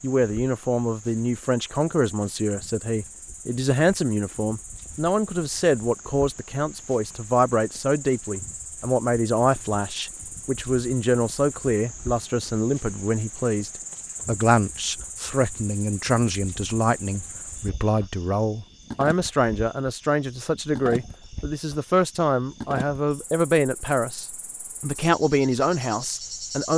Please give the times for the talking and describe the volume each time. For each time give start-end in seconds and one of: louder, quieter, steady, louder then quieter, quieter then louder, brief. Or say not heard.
0.0-26.7 steady.